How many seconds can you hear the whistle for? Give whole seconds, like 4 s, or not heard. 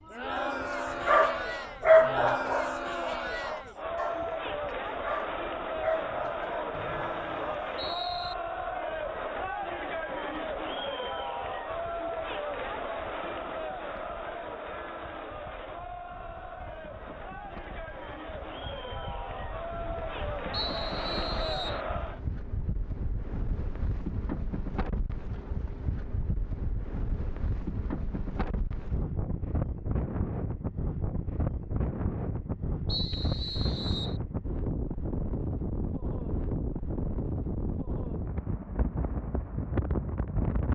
4 s.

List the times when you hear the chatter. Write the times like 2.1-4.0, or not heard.
0.0-22.2.